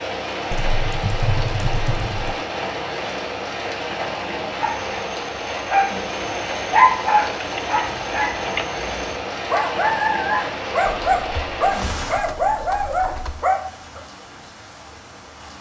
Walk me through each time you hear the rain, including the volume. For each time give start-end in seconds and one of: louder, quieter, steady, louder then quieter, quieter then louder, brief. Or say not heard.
0.0-15.5 quieter.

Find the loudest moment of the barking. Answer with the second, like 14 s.
7 s.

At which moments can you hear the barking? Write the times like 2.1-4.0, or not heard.
4.5-14.0.